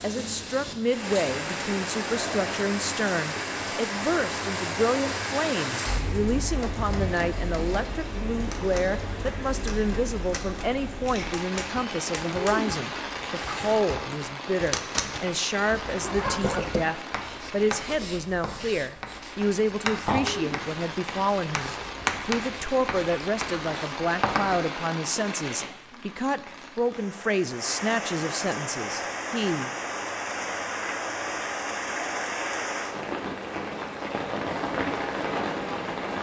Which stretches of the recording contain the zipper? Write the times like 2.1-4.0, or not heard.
15.7-16.6.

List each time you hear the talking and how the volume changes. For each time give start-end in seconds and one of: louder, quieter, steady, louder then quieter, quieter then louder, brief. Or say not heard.
0.0-29.7 steady.